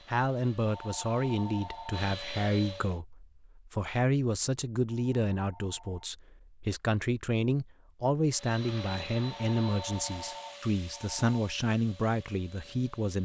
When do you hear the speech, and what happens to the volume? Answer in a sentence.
You can hear the speech from 0.1 to 13.2 s, at a steady volume.